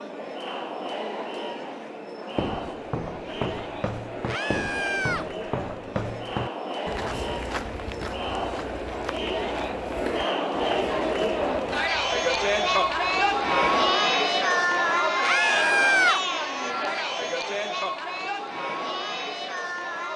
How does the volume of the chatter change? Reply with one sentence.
The loudness of the chatter goes up, then down.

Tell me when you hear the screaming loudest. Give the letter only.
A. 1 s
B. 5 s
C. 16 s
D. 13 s
C.